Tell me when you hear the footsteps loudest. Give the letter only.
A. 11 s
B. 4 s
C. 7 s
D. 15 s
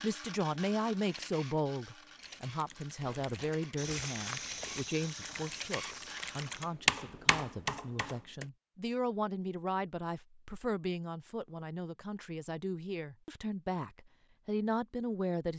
B.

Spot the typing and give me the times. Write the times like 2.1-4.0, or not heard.
2.1-8.4.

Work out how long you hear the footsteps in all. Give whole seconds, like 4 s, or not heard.
4 s.